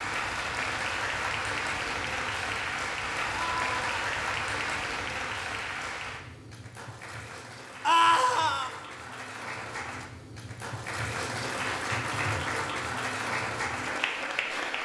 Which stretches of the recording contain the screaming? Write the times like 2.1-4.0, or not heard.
3.3-4.0, 7.8-8.7.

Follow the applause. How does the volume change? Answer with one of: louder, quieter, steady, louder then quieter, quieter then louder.
quieter then louder.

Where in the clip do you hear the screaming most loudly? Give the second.
8 s.